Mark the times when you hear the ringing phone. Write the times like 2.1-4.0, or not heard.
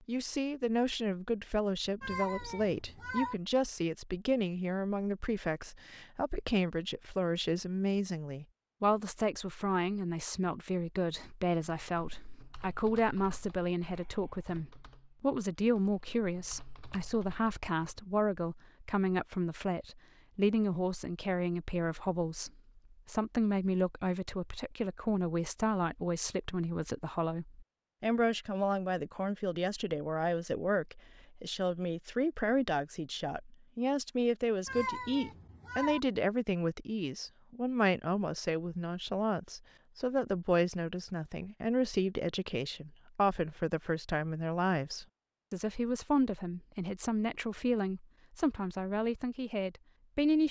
not heard.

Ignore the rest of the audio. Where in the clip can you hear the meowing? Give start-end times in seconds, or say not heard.
2.0-3.4, 34.6-36.0.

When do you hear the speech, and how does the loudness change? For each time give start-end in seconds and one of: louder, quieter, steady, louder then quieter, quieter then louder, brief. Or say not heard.
0.1-50.4 steady.